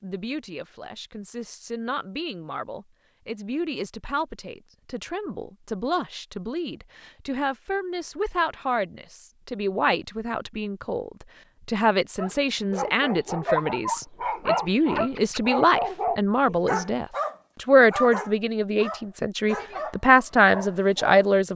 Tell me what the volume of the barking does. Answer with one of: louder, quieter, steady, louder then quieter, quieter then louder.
quieter.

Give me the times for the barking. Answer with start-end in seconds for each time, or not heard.
12.2-21.2.